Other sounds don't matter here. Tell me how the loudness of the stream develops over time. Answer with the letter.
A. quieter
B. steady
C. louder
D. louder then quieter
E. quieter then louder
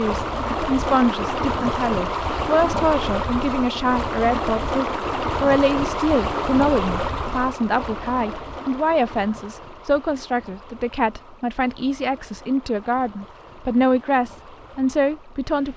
A.